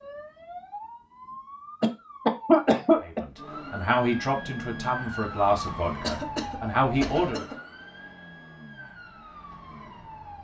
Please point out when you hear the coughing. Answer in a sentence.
You can hear the coughing from 1.8 to 3.2 s and from 6.0 to 7.6 s.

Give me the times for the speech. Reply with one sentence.
The speech can be heard from 3.0 to 7.5 s.